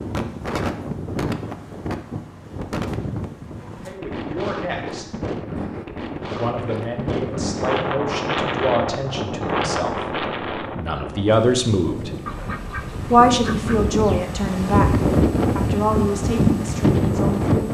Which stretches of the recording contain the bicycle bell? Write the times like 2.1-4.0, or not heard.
not heard.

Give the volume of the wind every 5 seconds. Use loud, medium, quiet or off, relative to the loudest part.
medium, medium, medium, loud.